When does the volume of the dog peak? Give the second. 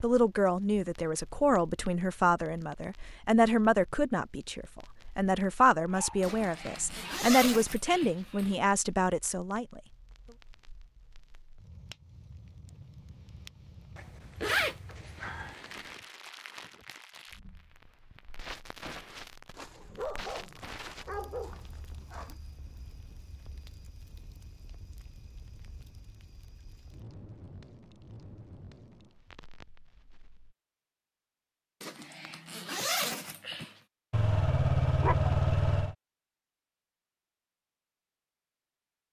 35 s.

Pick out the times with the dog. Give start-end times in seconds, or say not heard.
5.8-7.3, 19.6-22.4, 34.1-36.0.